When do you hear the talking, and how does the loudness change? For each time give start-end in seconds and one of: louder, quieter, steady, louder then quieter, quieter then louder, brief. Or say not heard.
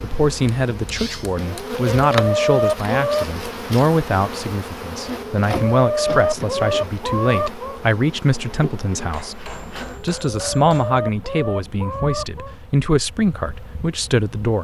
0.0-14.5 steady.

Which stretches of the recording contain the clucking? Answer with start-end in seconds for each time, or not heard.
1.4-3.2, 5.0-7.8, 9.8-12.6.